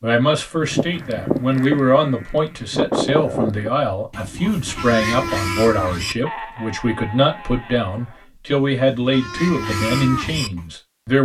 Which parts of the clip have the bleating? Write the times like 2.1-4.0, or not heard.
0.6-10.7.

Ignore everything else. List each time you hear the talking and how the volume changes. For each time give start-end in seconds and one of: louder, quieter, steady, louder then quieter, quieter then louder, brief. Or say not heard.
0.0-11.2 steady.